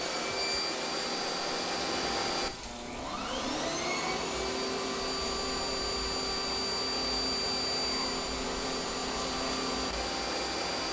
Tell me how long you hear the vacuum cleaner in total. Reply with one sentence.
The vacuum cleaner can be heard for 11 seconds in total.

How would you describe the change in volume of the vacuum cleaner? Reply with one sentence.
The volume of the vacuum cleaner stays about the same.